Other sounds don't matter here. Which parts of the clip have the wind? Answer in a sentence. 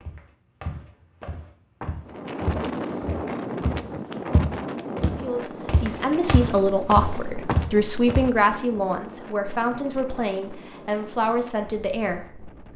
You can hear the wind from 2.0 to 12.7 s.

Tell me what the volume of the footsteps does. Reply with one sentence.
The loudness of the footsteps goes up.